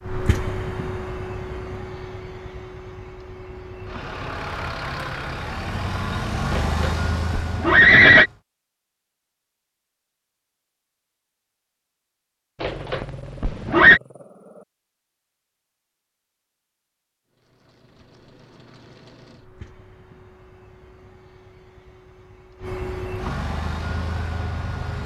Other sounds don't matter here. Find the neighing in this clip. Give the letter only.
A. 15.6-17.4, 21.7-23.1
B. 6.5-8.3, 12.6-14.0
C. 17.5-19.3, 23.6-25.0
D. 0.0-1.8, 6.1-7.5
B.